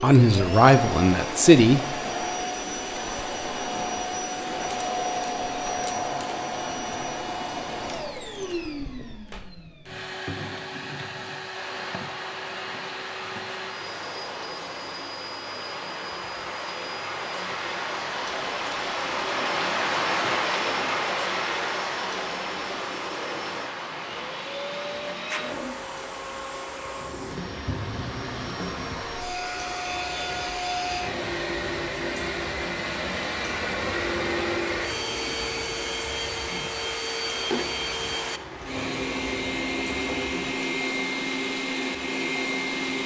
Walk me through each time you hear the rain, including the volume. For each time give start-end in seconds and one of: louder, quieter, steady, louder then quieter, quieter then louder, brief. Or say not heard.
11.5-43.0 louder then quieter.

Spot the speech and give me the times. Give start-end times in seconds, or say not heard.
0.0-1.8.